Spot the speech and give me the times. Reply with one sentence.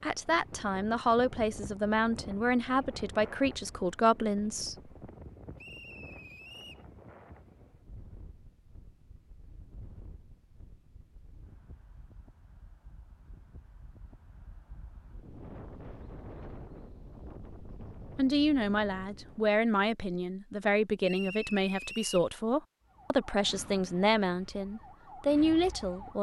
The speech can be heard from 0.0 to 4.9 s and from 18.1 to 26.1 s.